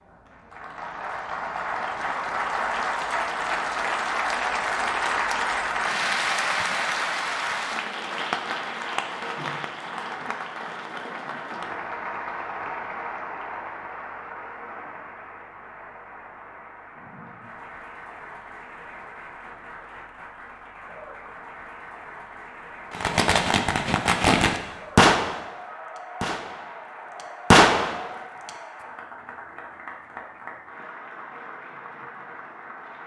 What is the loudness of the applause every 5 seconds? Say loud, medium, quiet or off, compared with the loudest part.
loud, loud, medium, quiet, quiet, quiet, quiet.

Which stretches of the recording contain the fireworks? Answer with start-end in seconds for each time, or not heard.
22.9-25.5, 26.2-26.8, 27.5-28.1.